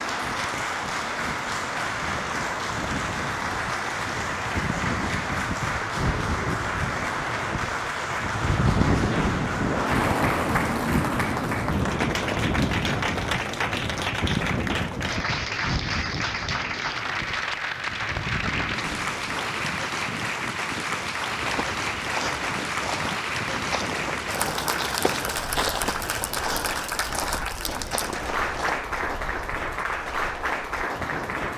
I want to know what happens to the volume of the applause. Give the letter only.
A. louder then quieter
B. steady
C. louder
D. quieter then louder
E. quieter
B.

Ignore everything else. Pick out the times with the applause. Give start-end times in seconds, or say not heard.
0.0-31.5.